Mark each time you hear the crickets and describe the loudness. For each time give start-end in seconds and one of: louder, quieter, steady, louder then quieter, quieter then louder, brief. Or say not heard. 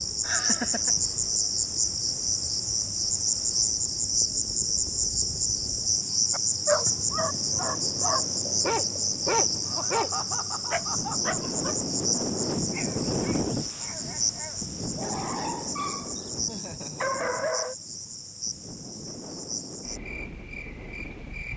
0.0-21.5 quieter.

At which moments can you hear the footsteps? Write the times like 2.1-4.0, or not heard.
not heard.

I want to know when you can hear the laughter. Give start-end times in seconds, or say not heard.
0.2-0.9, 9.7-11.4, 16.4-17.2.